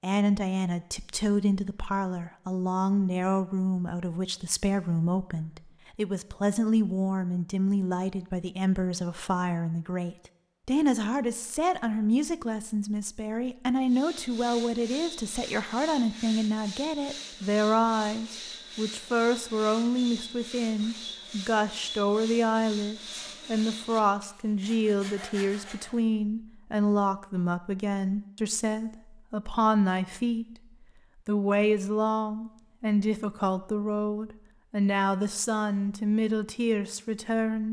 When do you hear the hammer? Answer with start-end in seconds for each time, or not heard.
not heard.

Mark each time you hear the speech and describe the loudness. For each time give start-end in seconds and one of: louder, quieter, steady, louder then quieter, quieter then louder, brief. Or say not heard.
0.0-30.4 steady
31.2-37.6 steady.